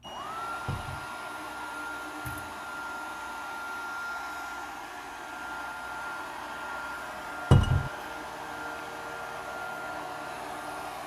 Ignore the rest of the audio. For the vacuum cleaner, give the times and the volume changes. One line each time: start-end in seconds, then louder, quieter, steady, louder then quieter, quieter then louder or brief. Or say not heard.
0.0-11.0 steady.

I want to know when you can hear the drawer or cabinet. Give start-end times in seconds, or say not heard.
0.7-1.1, 7.5-7.9.